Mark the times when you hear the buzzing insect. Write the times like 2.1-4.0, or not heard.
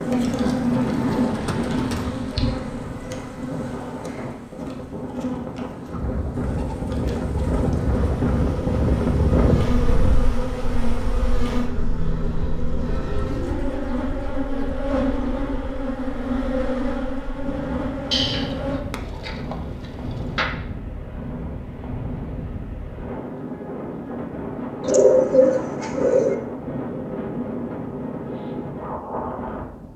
0.0-18.8.